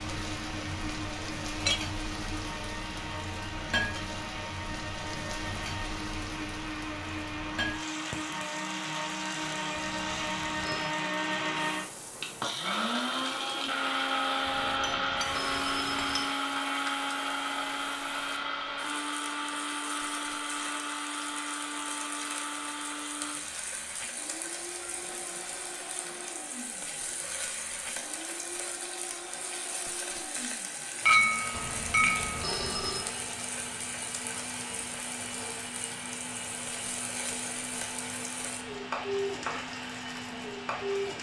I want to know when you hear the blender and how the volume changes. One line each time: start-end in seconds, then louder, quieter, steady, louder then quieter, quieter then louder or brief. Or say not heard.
0.0-41.1 louder then quieter.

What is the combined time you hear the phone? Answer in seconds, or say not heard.
5 s.